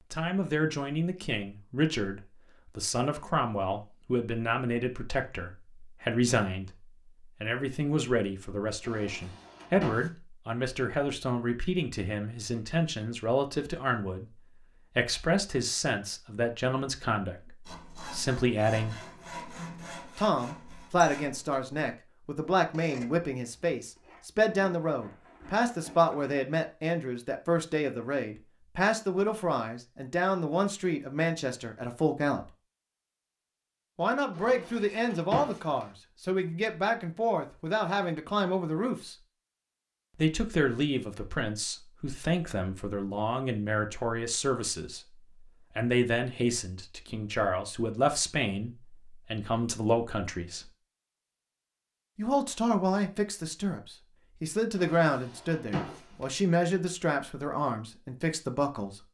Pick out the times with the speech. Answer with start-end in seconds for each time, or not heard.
0.1-18.9, 20.1-32.5, 34.0-39.1, 40.1-50.7, 52.1-59.0.